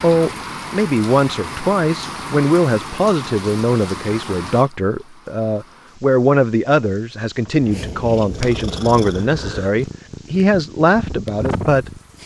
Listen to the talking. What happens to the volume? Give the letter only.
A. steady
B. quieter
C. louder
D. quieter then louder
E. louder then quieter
A.